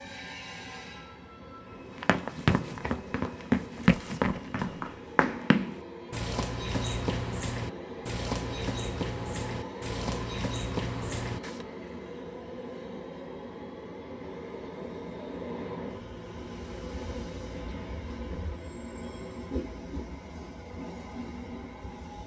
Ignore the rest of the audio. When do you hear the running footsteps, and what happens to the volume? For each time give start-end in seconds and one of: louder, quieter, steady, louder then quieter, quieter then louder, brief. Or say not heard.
1.9-11.7 quieter.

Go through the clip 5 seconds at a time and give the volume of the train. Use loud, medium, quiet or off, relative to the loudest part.
medium, loud, loud, loud, loud.